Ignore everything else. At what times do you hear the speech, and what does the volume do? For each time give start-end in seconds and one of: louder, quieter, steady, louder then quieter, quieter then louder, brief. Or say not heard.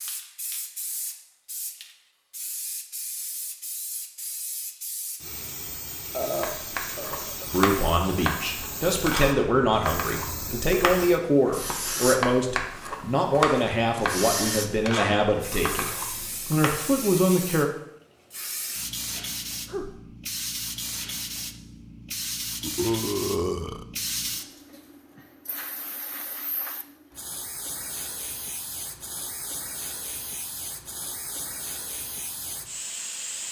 7.5-17.6 steady.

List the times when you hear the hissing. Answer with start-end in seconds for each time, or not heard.
0.0-33.4.